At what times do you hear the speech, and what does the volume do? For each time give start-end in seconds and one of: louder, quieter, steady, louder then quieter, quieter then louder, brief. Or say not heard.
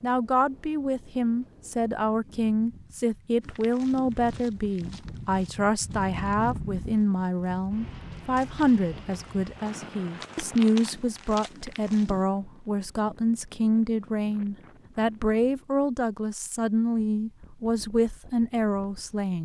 0.0-19.3 steady.